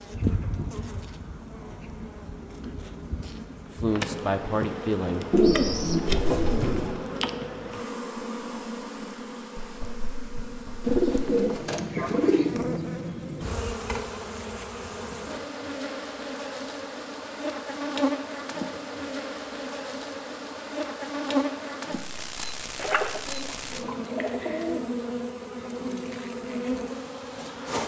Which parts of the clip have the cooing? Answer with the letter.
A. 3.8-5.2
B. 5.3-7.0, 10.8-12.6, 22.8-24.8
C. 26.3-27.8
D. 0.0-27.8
B.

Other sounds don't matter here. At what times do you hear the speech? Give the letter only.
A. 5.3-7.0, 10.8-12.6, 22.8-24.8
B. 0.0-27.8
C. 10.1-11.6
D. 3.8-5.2
D.